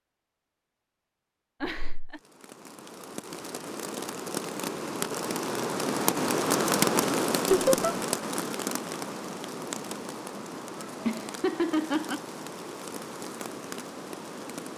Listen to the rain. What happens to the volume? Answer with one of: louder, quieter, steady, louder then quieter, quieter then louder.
louder then quieter.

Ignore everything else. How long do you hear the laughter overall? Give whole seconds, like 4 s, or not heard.
3 s.